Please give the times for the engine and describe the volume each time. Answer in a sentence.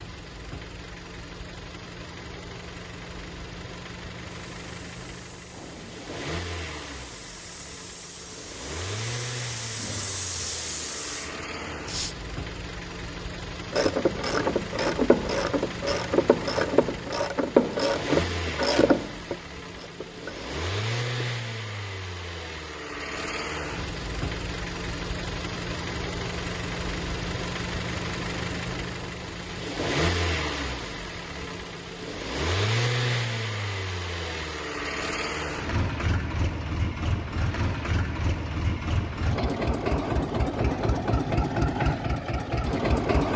The engine can be heard from 0.0 to 43.3 s, getting louder.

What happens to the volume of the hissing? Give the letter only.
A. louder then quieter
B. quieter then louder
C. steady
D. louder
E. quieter
D.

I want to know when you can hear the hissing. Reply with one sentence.
The hissing can be heard from 4.2 to 12.2 s.